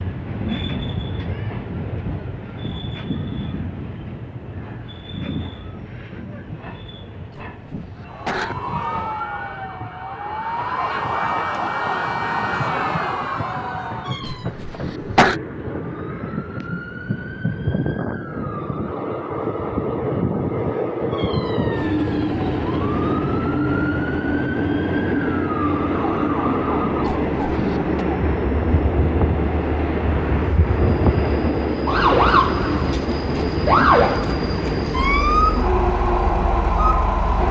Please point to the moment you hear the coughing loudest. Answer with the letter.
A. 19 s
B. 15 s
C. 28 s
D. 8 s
B.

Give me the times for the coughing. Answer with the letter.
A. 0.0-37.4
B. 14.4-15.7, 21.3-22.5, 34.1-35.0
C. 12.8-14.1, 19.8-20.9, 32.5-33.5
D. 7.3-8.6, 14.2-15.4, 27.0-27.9
D.